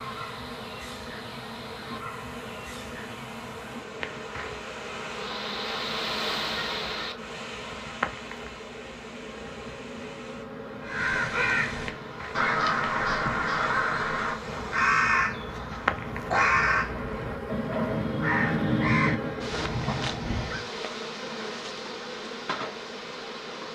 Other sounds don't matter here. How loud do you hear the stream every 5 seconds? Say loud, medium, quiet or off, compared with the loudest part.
medium, loud, medium, off, off.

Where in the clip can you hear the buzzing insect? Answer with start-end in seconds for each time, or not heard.
0.0-23.7.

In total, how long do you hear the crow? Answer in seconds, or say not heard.
10 s.